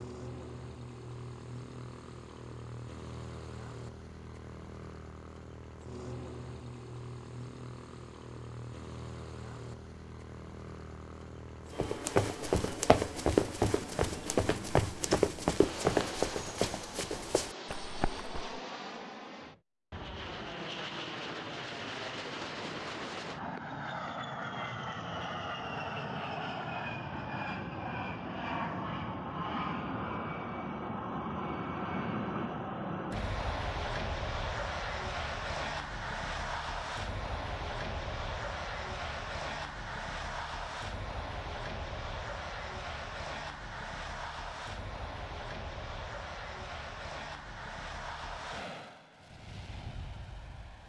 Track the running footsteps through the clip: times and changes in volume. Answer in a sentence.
The running footsteps can be heard from 11.8 to 18.6 s, getting quieter.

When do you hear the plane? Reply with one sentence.
You can hear the plane from 0.0 to 50.8 s.